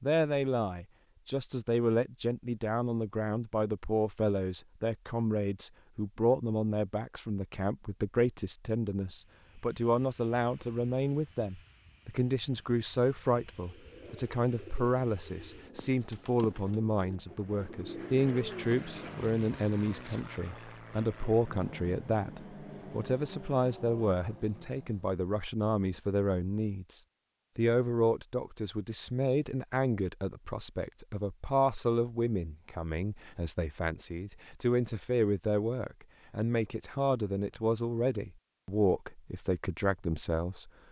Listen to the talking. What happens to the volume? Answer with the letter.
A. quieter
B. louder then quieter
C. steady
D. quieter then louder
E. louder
C.